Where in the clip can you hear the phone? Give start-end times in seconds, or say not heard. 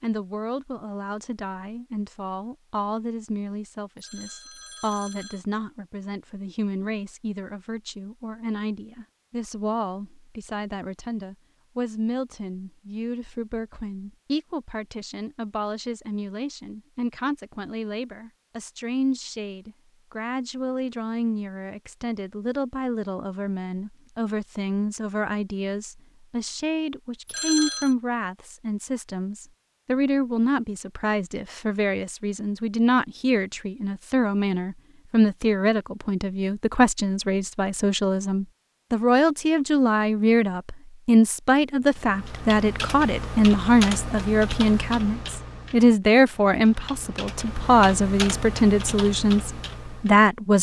4.0-5.5, 27.2-27.9.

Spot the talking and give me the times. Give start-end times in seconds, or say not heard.
0.0-50.5.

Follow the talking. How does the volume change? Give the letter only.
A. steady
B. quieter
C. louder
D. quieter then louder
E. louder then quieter
C.